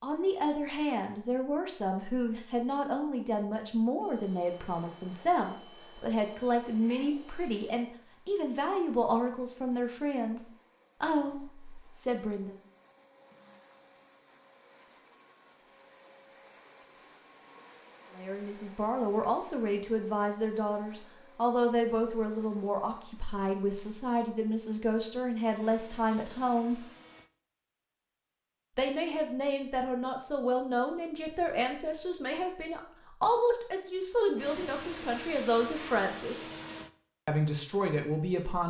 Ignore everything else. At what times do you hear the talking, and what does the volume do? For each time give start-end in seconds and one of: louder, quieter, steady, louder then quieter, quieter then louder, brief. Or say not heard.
0.0-12.6 steady
18.1-26.8 steady
28.8-36.5 steady
37.2-38.6 brief.